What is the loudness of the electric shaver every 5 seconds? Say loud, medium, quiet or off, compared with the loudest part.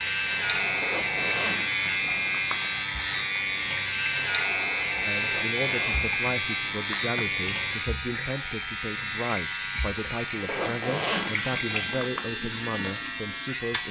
loud, loud, medium.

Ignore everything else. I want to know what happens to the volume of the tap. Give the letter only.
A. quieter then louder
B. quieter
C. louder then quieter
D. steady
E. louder
D.